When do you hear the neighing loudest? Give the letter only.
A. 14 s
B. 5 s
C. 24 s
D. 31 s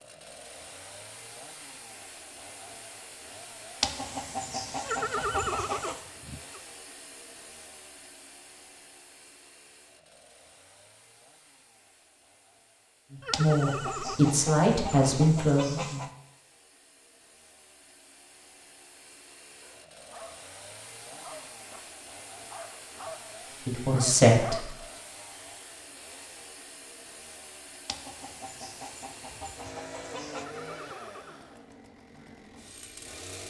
B.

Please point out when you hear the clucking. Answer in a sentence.
You can hear the clucking from 3.8 to 6.0 s, from 13.3 to 16.1 s and from 27.9 to 30.4 s.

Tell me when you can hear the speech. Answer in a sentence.
The speech can be heard from 13.1 to 16.1 s and from 23.6 to 24.7 s.